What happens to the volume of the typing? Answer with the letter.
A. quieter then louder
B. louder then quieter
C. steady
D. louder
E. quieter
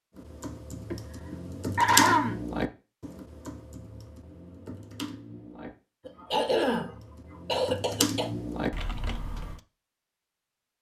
A.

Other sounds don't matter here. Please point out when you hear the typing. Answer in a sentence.
The typing can be heard from 0.1 to 9.6 s.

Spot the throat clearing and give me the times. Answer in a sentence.
The throat clearing can be heard from 0.9 to 2.4 s and from 6.0 to 8.3 s.